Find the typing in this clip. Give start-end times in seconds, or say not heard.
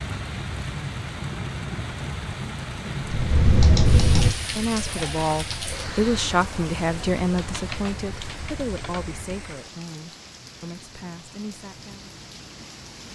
3.0-9.7.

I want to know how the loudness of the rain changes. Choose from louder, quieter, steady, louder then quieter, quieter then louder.
quieter.